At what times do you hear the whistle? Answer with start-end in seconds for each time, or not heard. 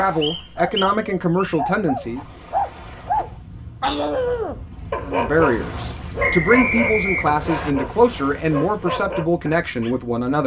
0.2-1.6, 6.2-7.8.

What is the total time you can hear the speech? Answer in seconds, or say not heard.
8 s.